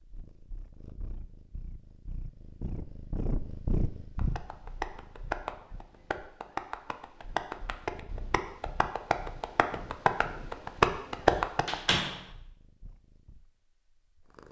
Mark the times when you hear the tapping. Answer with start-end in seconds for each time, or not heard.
4.2-11.8.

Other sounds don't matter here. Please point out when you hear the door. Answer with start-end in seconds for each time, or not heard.
11.3-12.2.